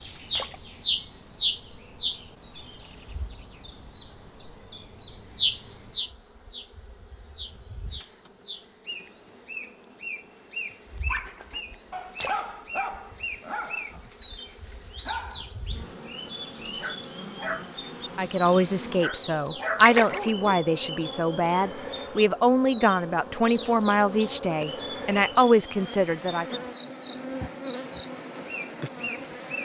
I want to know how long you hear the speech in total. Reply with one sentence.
The speech can be heard for 8 seconds in total.